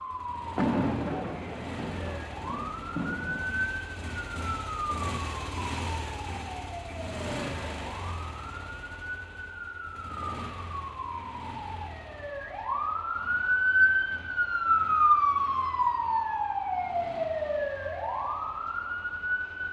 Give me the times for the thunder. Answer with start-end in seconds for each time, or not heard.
0.6-3.5.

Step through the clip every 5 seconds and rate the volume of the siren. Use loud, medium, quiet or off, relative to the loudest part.
medium, quiet, loud, loud.